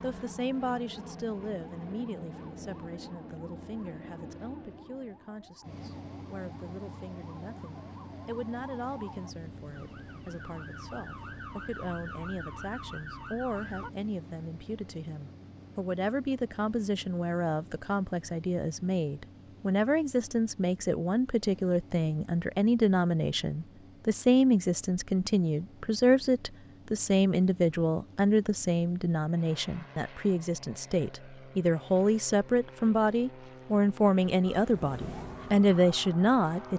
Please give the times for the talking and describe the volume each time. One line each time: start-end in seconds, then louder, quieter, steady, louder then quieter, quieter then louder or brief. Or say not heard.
0.0-36.7 louder.